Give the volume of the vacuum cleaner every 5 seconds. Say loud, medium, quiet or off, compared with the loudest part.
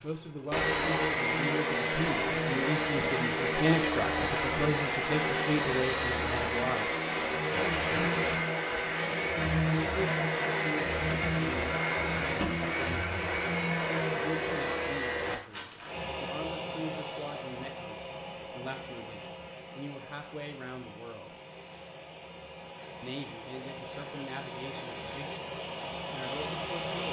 loud, loud, loud, medium, quiet, medium.